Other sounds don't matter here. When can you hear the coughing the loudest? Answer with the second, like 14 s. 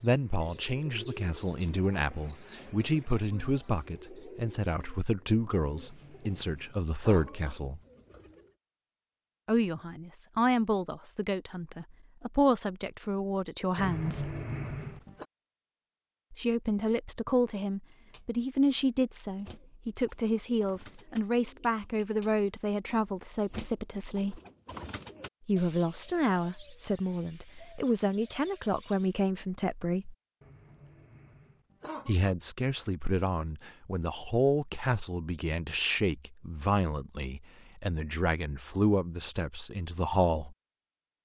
14 s.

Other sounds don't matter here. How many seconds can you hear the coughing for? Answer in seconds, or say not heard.
5 s.